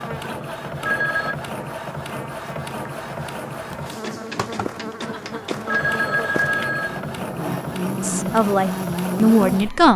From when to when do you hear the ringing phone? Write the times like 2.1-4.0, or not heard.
0.2-1.4, 5.0-7.0.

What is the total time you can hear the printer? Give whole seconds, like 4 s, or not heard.
10 s.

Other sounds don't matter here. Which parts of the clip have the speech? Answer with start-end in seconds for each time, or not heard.
8.0-9.9.